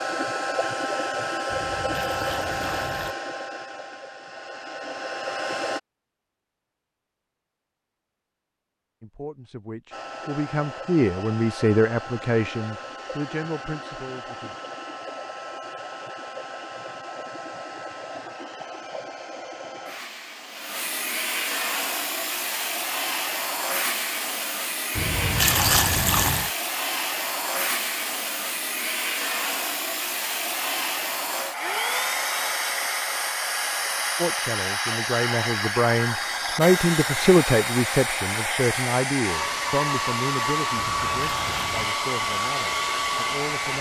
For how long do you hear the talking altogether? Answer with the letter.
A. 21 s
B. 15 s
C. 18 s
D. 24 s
B.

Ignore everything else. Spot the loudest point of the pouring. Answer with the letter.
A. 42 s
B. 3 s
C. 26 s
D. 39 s
C.